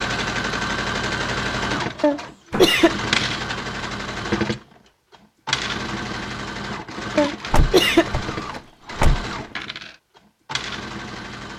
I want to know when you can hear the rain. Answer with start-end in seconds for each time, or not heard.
not heard.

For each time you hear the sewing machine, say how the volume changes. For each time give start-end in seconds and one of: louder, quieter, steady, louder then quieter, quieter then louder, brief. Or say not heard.
0.0-11.5 quieter.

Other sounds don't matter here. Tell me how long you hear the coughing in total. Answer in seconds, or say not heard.
2 s.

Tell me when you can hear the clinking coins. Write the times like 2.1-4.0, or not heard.
not heard.